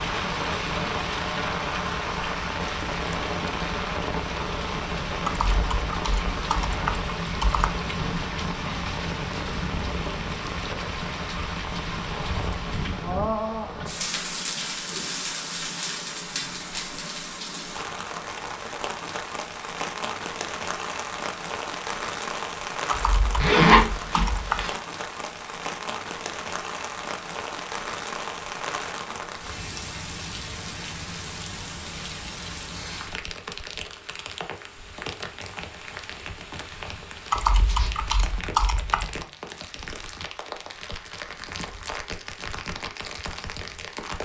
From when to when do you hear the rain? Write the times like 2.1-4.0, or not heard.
0.0-44.2.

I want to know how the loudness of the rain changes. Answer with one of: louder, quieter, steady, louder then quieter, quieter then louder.
quieter.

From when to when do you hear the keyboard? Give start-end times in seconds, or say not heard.
5.2-7.7, 22.9-24.6, 37.3-39.2.